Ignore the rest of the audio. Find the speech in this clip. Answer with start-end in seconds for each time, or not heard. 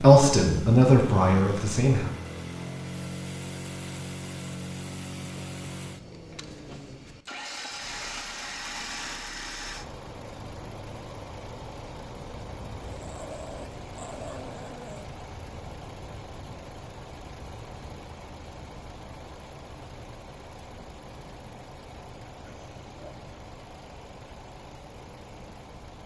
0.0-2.1.